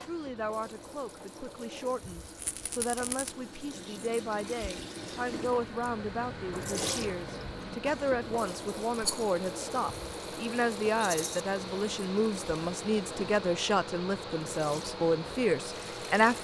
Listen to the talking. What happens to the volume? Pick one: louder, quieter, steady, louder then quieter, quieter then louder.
louder.